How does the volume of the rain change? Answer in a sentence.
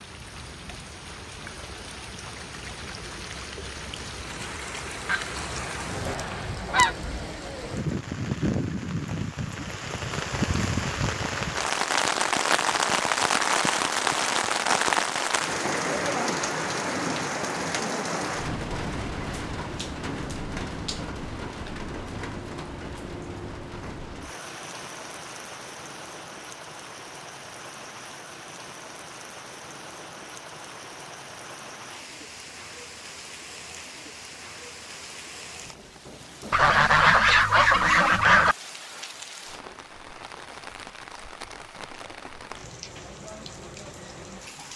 The volume of the rain goes up, then down.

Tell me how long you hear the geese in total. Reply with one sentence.
The geese can be heard for 4 seconds in total.